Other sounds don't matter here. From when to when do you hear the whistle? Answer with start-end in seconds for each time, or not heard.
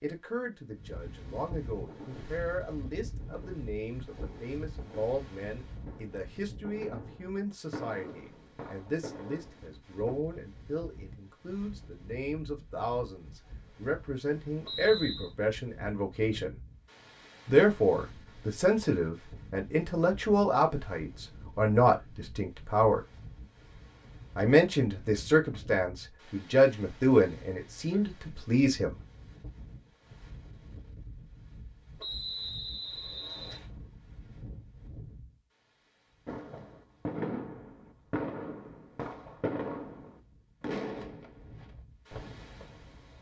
14.7-15.3, 32.0-33.6.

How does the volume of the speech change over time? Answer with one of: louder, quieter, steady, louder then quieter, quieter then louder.
louder.